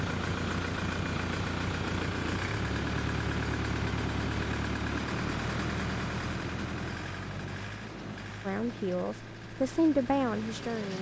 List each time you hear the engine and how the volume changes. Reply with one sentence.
The engine can be heard from 0.0 to 10.9 s, getting quieter.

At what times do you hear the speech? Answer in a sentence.
The speech can be heard from 8.4 to 10.9 s.